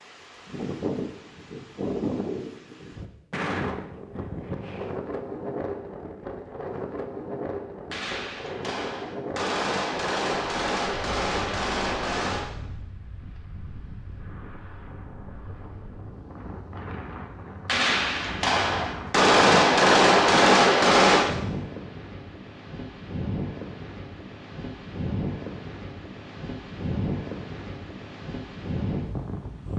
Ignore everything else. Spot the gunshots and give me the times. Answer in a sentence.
You can hear the gunshots from 7.9 to 12.6 s and from 17.6 to 21.4 s.